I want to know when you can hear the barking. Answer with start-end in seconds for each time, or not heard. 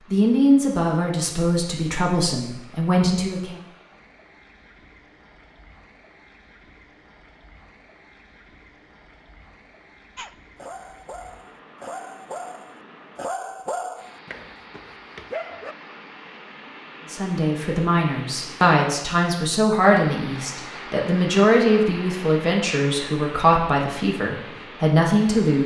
10.2-15.8.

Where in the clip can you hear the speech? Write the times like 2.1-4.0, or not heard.
0.1-3.6, 17.1-25.6.